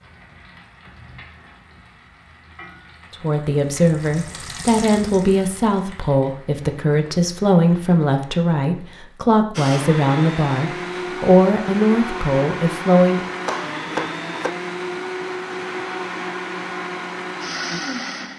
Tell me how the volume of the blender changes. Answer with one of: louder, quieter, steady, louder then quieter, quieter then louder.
steady.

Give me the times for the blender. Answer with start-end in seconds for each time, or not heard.
9.6-18.3.